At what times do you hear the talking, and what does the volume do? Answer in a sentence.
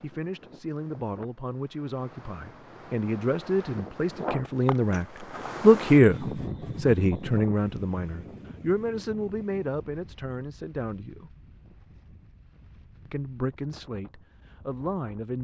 The talking can be heard from 0.0 to 11.3 s, getting louder then quieter; and briefly from 13.1 to 15.3 s.